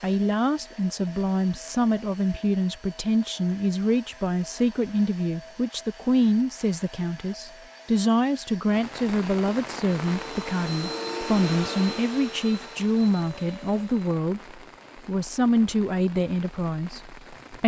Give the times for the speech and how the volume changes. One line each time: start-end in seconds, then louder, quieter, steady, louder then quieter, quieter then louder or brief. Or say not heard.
0.0-17.6 steady.